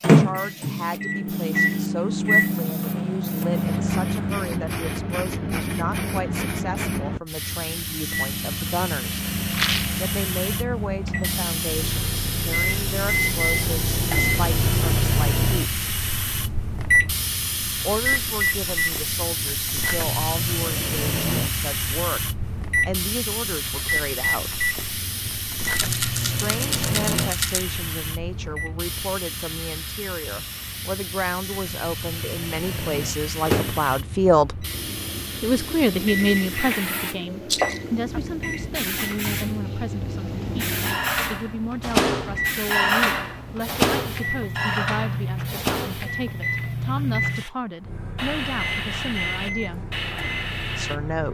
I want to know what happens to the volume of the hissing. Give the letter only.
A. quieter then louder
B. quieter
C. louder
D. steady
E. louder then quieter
D.